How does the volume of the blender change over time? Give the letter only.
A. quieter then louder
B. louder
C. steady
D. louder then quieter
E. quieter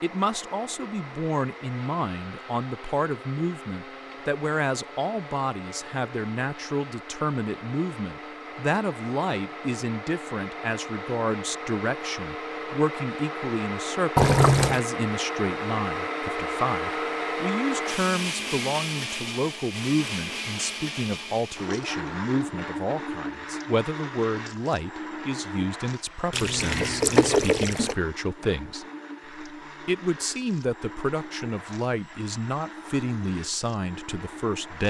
D.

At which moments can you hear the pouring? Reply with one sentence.
The pouring can be heard from 14.2 to 14.8 s and from 26.3 to 27.9 s.